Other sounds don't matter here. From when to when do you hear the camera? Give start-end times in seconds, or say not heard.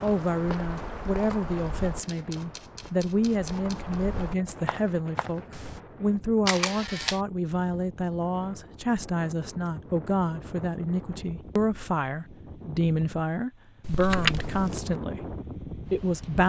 2.0-4.0, 6.5-7.2, 13.8-14.8.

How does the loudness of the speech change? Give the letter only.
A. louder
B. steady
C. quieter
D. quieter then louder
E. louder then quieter
B.